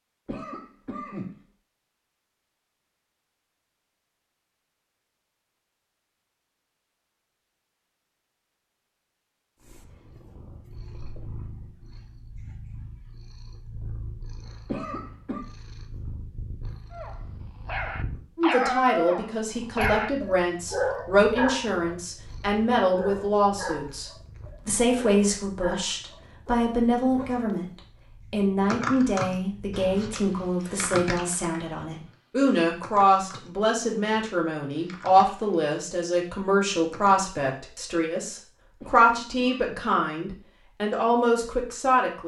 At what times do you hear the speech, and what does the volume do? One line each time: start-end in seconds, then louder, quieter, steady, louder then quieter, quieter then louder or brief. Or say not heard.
18.4-42.2 steady.